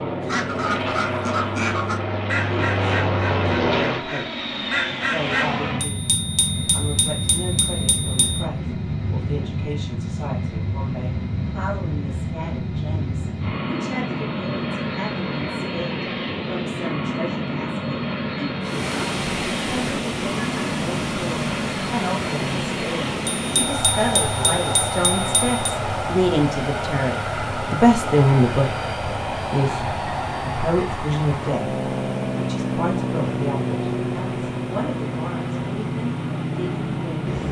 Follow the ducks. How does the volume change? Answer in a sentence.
The loudness of the ducks goes down, then up.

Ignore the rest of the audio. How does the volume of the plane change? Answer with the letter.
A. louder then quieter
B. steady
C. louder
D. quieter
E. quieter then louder
B.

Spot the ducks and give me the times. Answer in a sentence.
You can hear the ducks from 0.2 to 5.5 s.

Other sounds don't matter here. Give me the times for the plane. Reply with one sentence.
You can hear the plane from 0.0 to 37.4 s.